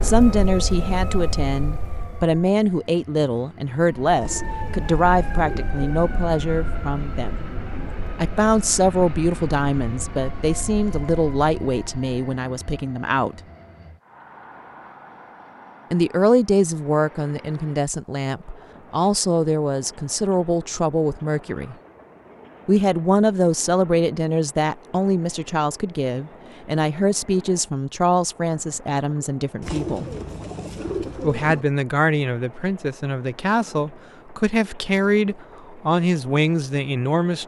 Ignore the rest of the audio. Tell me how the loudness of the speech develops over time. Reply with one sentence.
The loudness of the speech stays about the same.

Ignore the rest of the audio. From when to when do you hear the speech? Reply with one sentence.
The speech can be heard from 0.0 to 7.4 s, from 8.2 to 13.4 s, from 15.9 to 21.8 s, from 22.6 to 30.1 s and from 31.2 to 37.4 s.